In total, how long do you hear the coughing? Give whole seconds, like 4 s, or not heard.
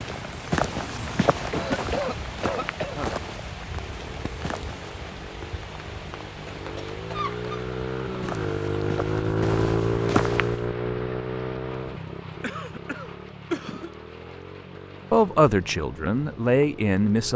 4 s.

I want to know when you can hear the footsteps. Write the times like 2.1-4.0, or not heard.
0.0-5.0, 8.2-10.7.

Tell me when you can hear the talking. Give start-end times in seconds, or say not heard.
15.1-17.3.